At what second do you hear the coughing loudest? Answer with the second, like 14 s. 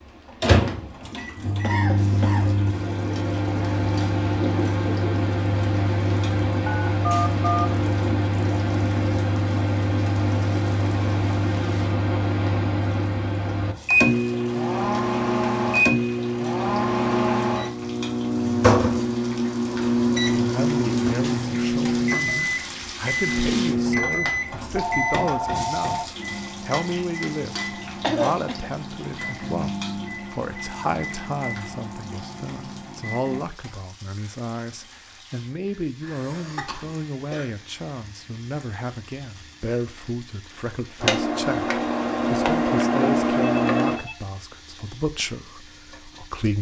28 s.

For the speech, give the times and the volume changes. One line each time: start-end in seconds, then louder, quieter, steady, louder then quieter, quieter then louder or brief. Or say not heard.
20.4-46.5 steady.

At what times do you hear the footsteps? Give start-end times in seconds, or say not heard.
not heard.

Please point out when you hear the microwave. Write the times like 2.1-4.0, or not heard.
0.4-33.4, 41.0-44.0.